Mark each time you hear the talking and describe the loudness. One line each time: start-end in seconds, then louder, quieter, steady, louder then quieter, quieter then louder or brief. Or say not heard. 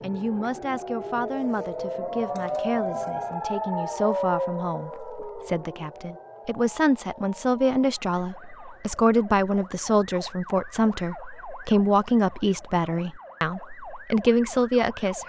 0.0-15.2 louder.